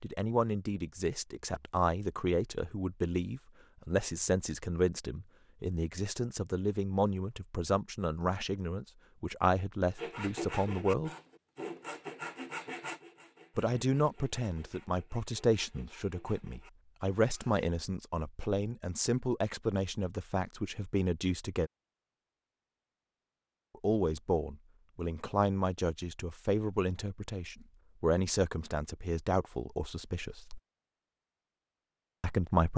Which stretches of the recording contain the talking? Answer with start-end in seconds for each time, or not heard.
0.0-11.1, 13.6-21.7, 23.8-30.6, 32.2-32.7.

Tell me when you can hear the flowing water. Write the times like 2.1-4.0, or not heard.
not heard.